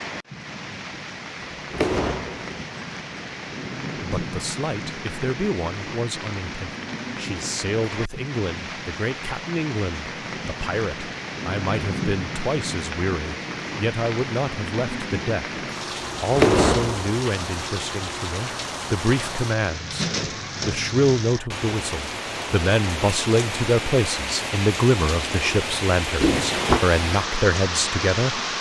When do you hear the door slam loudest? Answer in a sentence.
The loudest moment of the door slam is at 17 seconds.